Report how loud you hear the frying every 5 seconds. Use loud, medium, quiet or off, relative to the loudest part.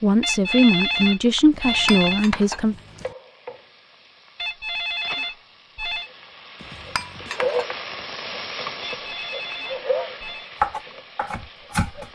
quiet, loud, medium.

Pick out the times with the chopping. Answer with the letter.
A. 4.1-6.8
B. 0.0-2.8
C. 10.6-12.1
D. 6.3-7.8
C.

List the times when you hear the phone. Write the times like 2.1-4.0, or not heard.
0.2-2.3, 4.3-6.1, 8.9-10.5.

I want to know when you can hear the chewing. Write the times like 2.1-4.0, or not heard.
not heard.